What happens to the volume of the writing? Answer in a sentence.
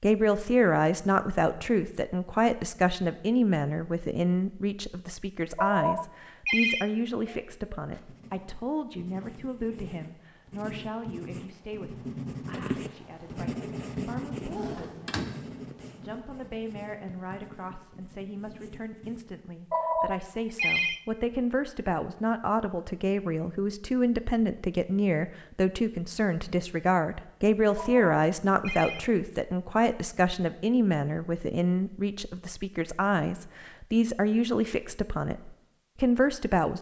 The volume of the writing goes up, then down.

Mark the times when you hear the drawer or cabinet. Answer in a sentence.
The drawer or cabinet can be heard from 14.3 to 15.9 s.